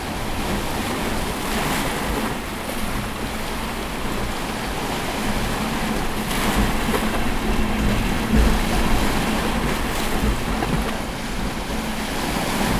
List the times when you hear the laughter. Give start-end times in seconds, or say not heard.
not heard.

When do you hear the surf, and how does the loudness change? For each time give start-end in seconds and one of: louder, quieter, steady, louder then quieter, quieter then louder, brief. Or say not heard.
0.0-12.7 steady.